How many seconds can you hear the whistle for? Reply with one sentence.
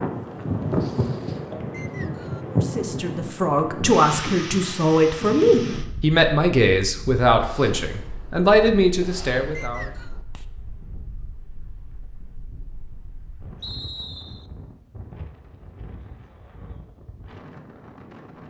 The whistle can be heard for 2 seconds in total.